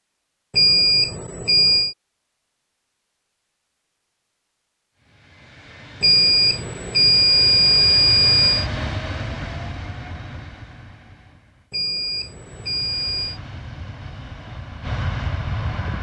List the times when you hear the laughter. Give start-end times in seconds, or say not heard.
not heard.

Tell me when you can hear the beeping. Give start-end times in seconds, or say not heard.
0.5-1.9, 6.0-8.7, 11.7-13.4.